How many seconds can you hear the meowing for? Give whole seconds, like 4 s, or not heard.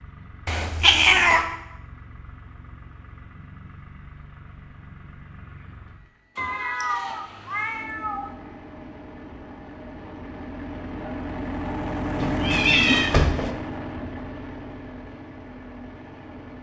4 s.